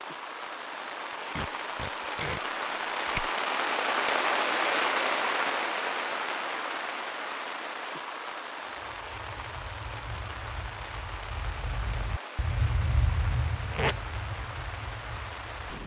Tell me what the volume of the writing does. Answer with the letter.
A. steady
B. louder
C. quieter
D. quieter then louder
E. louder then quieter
E.